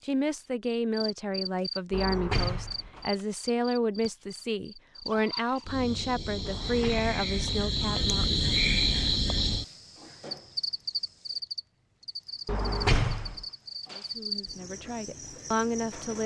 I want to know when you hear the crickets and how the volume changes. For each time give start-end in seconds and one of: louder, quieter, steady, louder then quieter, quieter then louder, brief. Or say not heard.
0.0-16.2 louder then quieter.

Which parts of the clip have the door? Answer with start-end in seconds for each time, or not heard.
1.9-3.1, 6.5-7.1, 12.4-13.4.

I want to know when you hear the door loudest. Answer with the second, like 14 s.
13 s.